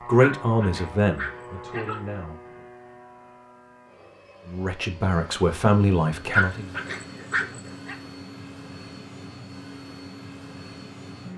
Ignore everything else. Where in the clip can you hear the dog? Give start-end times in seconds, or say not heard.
0.1-2.0, 6.3-8.0.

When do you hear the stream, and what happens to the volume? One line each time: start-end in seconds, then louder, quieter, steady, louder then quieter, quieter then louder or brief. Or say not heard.
not heard.